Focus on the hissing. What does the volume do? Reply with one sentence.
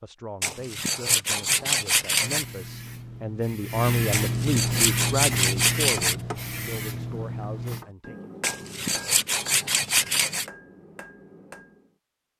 The loudness of the hissing goes up, then down.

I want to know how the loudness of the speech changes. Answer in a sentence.
The loudness of the speech goes up, then down.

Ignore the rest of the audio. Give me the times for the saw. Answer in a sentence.
You can hear the saw from 0.4 to 2.5 s, from 4.1 to 6.2 s and from 8.4 to 10.4 s.